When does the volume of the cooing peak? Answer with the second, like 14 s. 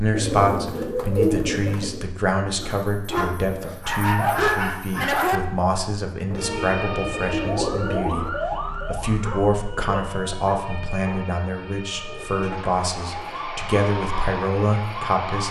1 s.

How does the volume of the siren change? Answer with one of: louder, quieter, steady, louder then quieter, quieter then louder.
quieter then louder.